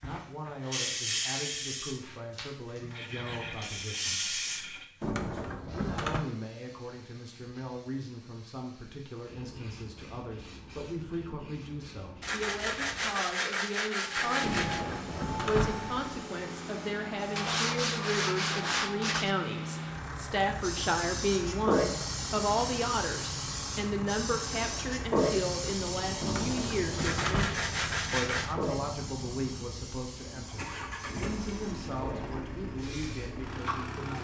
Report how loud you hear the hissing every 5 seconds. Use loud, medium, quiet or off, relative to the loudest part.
loud, quiet, quiet, quiet, loud, loud, medium.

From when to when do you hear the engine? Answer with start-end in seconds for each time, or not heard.
14.1-34.1.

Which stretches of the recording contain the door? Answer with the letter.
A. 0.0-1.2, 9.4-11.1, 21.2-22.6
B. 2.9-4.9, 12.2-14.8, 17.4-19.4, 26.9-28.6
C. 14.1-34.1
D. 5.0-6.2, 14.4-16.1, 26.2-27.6
D.